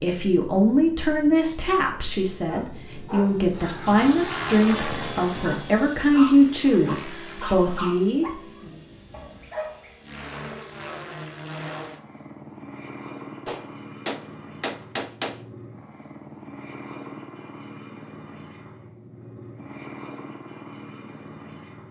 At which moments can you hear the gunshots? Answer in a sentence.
You can hear the gunshots from 13.4 to 15.4 s.